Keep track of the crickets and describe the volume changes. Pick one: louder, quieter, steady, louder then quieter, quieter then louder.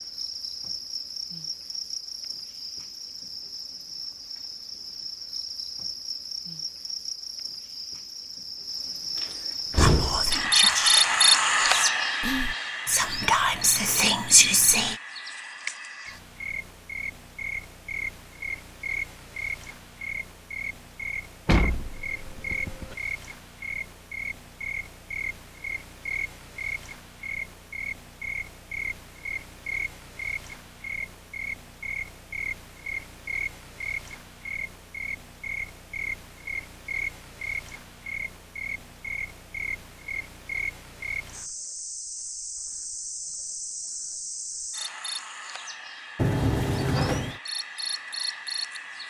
louder then quieter.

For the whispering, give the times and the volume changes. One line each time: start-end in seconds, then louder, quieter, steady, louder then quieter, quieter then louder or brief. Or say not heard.
9.8-14.9 quieter then louder.